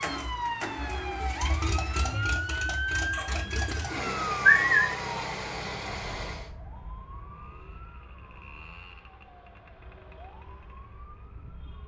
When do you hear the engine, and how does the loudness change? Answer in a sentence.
The engine can be heard from 0.0 to 6.5 s, at a steady volume.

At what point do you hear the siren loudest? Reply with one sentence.
The volume of the siren peaks at 3 seconds.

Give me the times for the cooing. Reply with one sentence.
The cooing can be heard from 3.1 to 4.8 s.